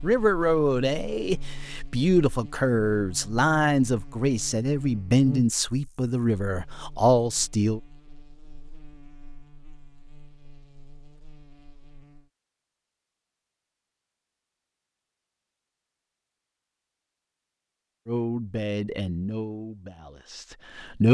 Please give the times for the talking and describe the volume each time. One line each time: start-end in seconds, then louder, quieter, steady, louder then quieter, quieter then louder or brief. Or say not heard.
0.0-7.8 steady
18.1-21.0 brief.